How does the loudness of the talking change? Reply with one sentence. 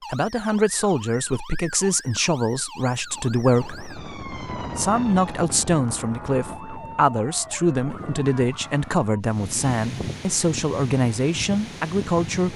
The loudness of the talking stays about the same.